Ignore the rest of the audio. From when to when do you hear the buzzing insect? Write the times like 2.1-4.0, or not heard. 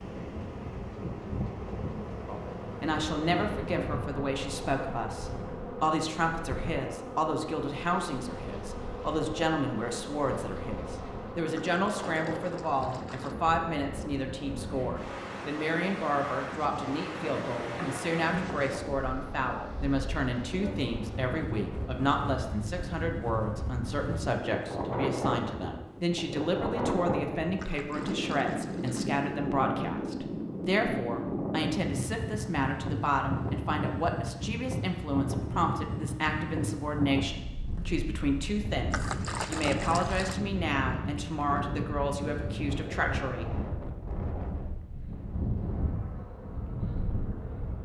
0.0-22.1, 45.6-47.8.